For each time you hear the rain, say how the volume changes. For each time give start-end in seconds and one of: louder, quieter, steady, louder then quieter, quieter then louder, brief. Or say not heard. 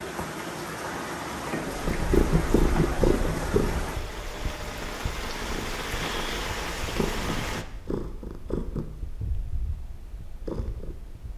0.0-7.7 steady.